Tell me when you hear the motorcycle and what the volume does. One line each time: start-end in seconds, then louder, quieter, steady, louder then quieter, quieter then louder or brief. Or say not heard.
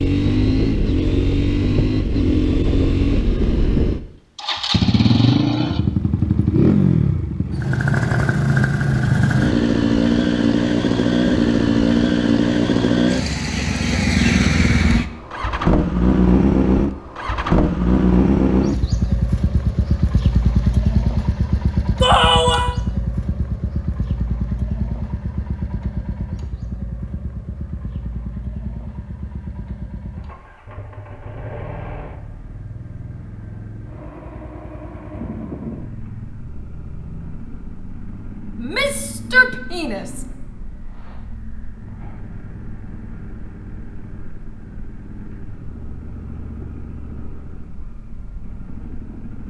0.0-49.4 quieter.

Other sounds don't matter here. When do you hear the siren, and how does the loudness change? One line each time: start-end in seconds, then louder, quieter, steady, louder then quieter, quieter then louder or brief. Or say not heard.
not heard.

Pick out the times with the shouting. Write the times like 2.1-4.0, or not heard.
22.0-22.8, 38.6-40.2.